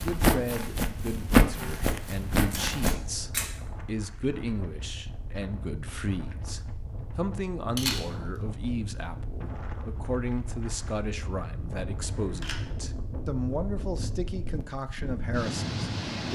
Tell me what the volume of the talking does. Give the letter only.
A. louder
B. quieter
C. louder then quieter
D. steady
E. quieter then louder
D.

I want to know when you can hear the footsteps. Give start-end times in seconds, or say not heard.
0.0-3.0.